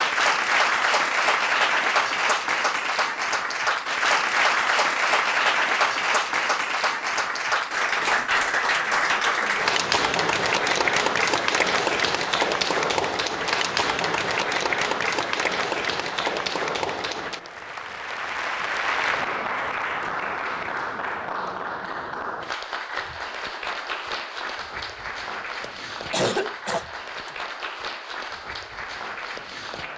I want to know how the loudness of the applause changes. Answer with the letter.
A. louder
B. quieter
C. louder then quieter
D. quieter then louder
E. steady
B.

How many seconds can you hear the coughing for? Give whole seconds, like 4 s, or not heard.
2 s.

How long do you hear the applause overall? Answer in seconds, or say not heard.
30 s.